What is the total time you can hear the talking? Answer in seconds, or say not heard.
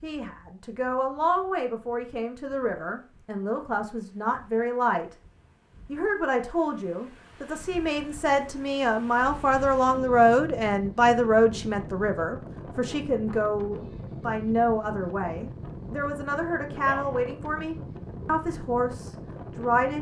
19 s.